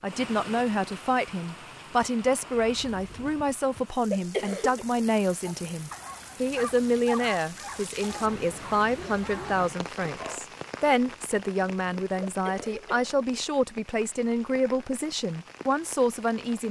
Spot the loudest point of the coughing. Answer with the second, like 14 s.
4 s.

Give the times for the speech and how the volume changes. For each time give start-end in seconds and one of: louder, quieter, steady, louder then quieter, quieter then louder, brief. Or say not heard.
0.0-16.6 steady.